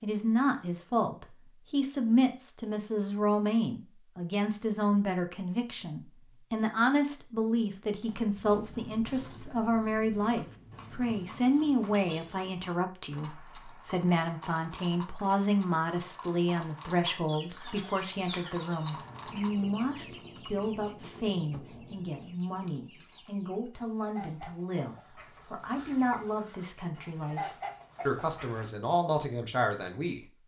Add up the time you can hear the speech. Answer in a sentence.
The speech can be heard for 30 seconds in total.